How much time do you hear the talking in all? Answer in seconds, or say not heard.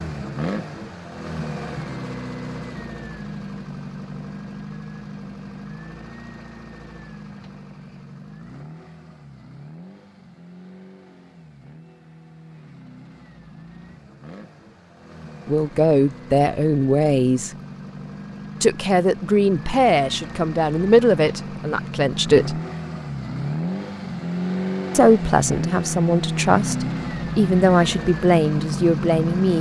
11 s.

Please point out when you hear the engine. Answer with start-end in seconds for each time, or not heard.
0.0-29.5.